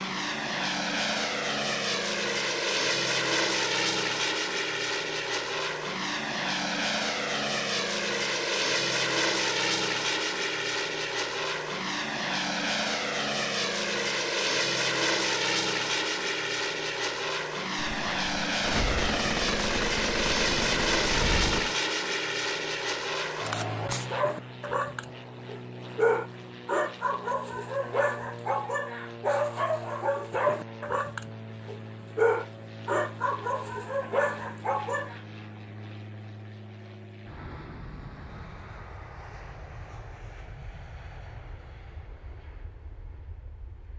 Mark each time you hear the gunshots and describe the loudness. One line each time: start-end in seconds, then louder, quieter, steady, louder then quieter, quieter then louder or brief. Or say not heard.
17.8-21.8 steady.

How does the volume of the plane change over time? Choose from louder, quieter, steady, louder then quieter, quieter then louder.
quieter.